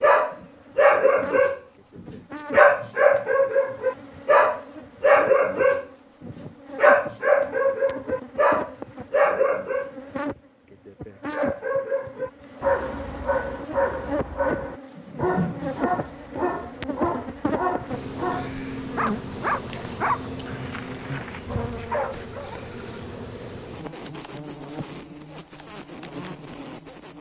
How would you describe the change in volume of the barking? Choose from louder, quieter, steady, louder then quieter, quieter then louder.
quieter.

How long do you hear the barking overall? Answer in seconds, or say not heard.
21 s.